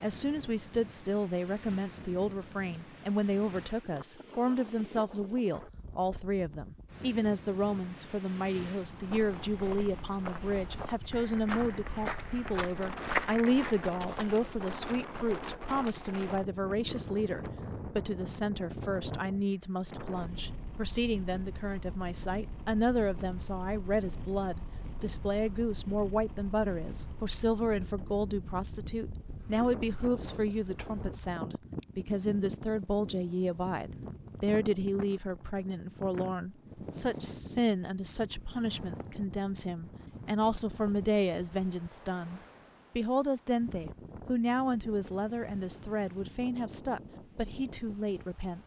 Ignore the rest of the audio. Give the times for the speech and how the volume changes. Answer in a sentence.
The speech can be heard from 0.0 to 48.6 s, at a steady volume.